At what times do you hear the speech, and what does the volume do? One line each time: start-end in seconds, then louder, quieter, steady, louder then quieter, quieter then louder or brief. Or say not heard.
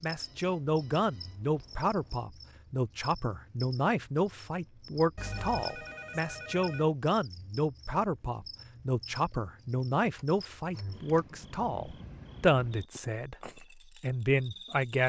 0.0-15.0 steady.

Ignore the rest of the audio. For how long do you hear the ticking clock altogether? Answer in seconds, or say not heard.
not heard.